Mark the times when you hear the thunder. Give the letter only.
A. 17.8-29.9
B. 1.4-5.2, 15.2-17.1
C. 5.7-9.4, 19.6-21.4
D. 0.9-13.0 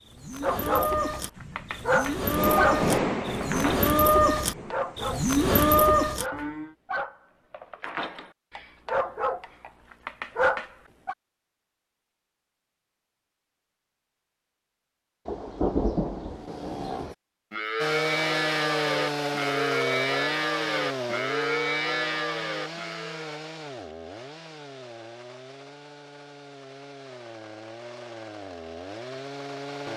B.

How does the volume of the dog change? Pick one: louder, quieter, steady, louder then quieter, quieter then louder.
quieter then louder.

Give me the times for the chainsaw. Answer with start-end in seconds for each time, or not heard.
17.8-29.9.